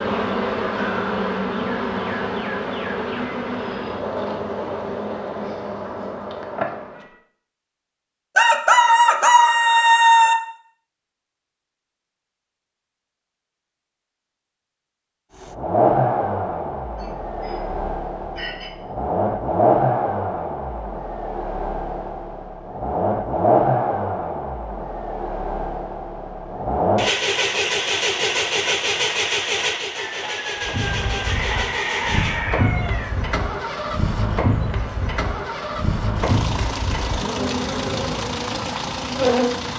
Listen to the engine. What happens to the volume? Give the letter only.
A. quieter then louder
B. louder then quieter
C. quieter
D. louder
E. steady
C.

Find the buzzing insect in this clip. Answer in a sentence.
The buzzing insect can be heard from 0.0 to 7.2 s and from 30.6 to 39.7 s.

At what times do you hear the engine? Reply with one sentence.
The engine can be heard from 15.4 to 39.7 s.